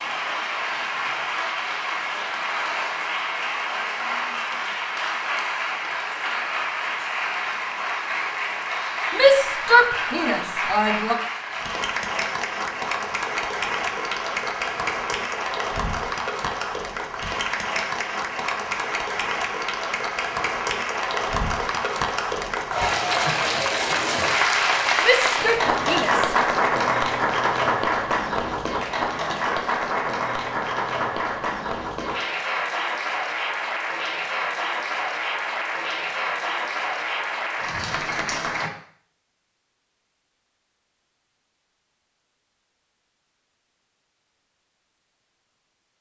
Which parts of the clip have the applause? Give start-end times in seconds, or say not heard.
0.0-38.7.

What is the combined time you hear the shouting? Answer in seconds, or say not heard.
3 s.